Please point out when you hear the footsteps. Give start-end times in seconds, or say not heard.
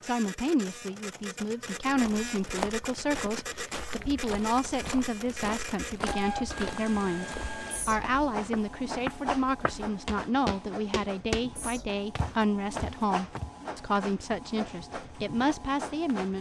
1.9-11.4, 12.2-13.6.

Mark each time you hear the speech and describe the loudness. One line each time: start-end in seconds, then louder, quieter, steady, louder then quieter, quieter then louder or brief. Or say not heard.
0.0-16.3 steady.